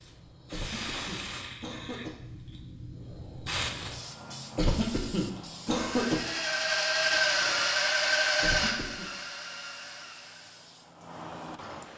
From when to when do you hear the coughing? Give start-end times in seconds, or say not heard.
0.5-2.2, 4.5-6.2, 8.4-9.1.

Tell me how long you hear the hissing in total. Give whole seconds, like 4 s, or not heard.
12 s.